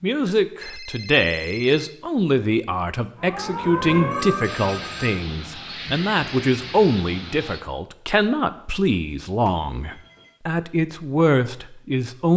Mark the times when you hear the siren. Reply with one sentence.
The siren can be heard from 3.1 to 4.9 s.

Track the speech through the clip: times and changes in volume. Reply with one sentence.
You can hear the speech from 0.0 to 12.3 s, at a steady volume.